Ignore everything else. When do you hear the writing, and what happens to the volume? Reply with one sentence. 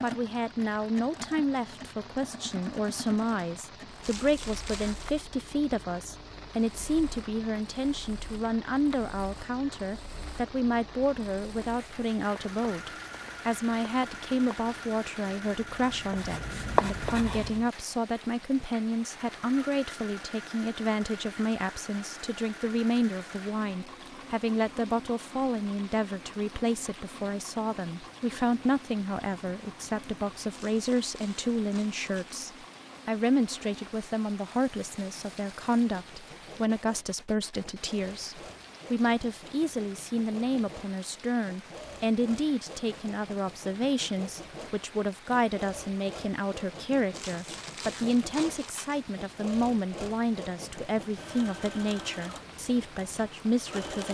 The writing can be heard from 11.5 to 17.6 s, getting louder.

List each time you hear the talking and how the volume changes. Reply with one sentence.
You can hear the talking from 0.0 to 54.0 s, at a steady volume.